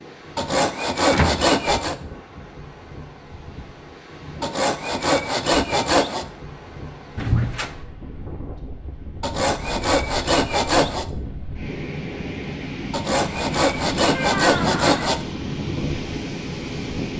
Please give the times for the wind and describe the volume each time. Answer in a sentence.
The wind can be heard from 0.0 to 17.1 s, getting louder.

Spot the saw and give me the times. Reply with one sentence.
You can hear the saw from 0.3 to 1.9 s, from 4.4 to 6.2 s, from 9.2 to 11.1 s and from 12.9 to 15.2 s.